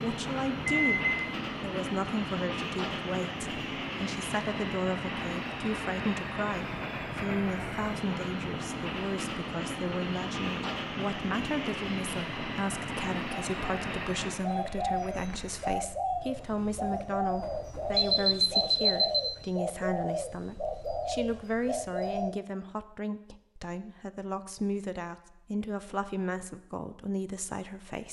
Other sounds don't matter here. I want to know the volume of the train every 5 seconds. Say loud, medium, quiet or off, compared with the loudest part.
loud, loud, loud, quiet, off, off.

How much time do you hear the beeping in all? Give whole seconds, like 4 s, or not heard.
2 s.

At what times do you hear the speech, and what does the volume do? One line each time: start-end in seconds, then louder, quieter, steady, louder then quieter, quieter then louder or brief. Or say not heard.
0.0-28.0 steady.